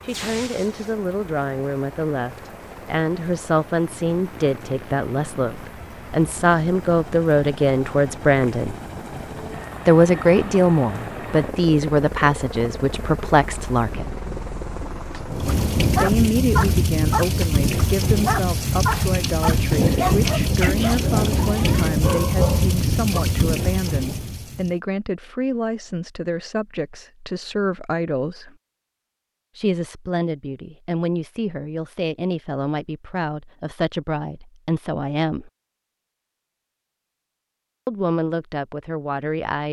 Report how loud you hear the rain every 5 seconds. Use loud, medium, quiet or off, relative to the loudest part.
quiet, quiet, quiet, loud, loud, off, off, off.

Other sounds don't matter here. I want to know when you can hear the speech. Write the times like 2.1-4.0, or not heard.
0.0-8.8, 9.8-14.2, 15.9-28.6, 29.6-35.5, 37.9-39.6.